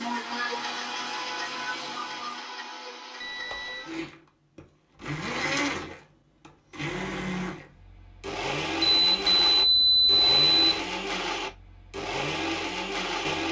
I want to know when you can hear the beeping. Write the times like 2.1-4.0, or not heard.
3.2-3.9, 8.8-10.8.